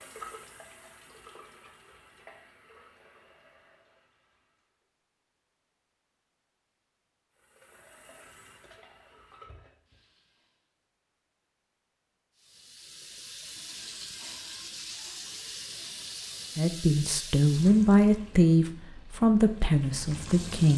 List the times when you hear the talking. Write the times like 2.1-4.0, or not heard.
16.6-20.7.